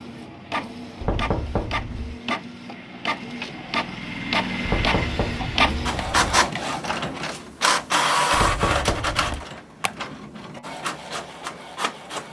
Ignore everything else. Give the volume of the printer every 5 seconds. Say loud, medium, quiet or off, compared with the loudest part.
medium, loud, medium.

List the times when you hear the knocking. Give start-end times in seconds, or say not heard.
1.0-2.2, 4.7-6.5, 8.3-9.4.